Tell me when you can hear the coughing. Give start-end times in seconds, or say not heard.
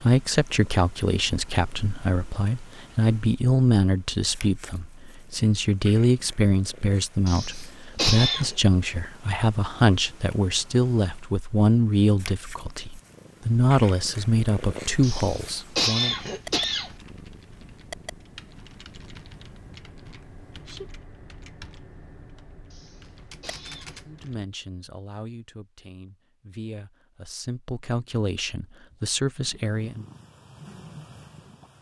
7.2-8.6, 15.0-16.9, 22.7-24.1.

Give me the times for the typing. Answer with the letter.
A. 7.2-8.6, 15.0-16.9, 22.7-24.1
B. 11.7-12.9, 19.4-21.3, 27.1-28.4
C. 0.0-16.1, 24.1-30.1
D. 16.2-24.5
D.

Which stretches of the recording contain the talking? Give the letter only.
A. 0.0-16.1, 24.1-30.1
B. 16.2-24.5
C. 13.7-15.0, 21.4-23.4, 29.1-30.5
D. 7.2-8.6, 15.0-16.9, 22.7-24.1
A.